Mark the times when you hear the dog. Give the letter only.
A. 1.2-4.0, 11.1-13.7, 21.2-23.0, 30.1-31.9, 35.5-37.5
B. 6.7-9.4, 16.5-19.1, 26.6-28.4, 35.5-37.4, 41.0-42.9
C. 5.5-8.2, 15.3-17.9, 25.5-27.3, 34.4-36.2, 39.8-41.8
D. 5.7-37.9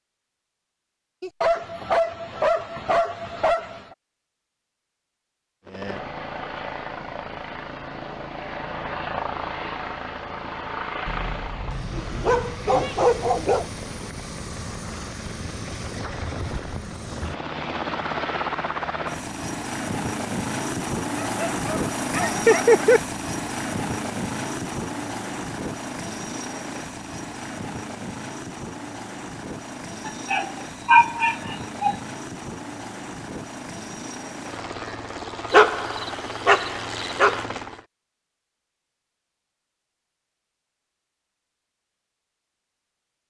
A.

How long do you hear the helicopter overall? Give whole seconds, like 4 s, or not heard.
32 s.